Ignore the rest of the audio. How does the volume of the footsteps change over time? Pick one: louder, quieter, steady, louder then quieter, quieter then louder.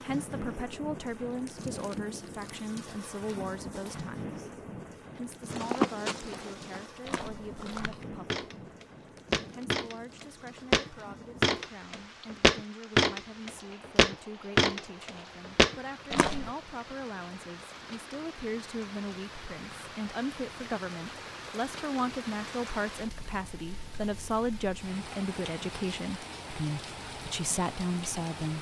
louder.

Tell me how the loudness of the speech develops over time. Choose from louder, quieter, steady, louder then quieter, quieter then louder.
quieter then louder.